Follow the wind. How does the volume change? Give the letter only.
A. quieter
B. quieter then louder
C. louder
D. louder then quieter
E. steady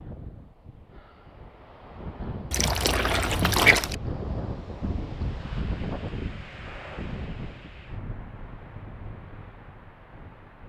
D.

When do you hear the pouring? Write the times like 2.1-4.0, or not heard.
2.5-4.0.